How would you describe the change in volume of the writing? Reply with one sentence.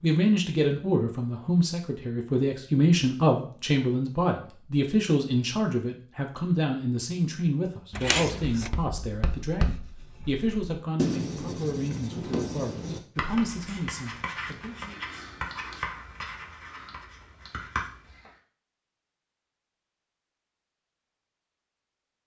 The volume of the writing goes up, then down.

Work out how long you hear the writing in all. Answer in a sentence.
The writing can be heard for 10 seconds in total.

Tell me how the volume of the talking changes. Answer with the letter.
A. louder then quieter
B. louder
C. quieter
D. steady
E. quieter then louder
C.